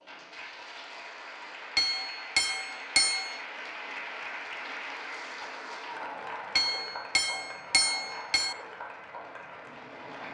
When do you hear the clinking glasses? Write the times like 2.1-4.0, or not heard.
1.8-3.4, 6.5-8.6.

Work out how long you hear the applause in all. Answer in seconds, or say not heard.
10 s.